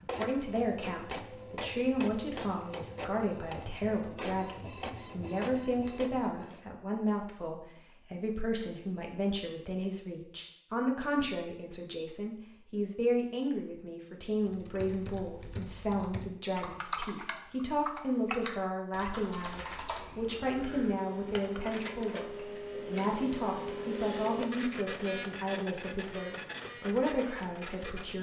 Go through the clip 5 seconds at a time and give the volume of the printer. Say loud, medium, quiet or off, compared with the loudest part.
loud, medium, off, off, loud, loud.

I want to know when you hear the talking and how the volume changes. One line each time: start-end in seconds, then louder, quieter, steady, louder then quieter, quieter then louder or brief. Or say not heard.
0.0-28.1 steady.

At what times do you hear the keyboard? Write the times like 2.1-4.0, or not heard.
14.3-21.8.